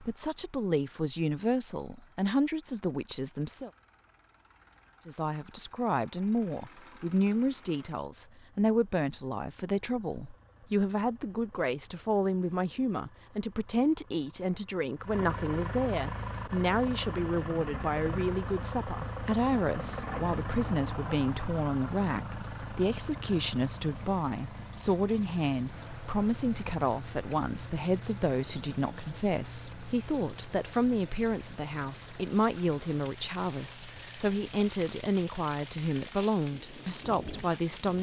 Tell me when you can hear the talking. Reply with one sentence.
You can hear the talking from 0.0 to 3.7 s and from 5.0 to 37.9 s.